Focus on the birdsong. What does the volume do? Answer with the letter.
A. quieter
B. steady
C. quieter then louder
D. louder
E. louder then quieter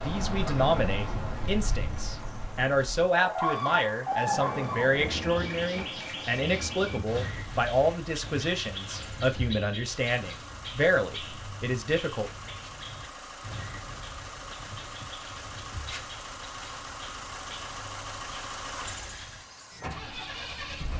A.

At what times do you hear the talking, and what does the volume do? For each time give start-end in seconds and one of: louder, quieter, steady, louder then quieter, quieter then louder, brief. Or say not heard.
0.0-12.3 steady.